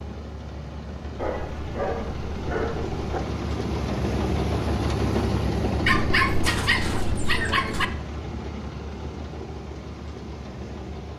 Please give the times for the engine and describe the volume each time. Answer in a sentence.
You can hear the engine from 0.0 to 11.1 s, getting louder then quieter.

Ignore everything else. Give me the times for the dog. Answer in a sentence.
The dog can be heard from 1.1 to 3.2 s and from 5.8 to 7.8 s.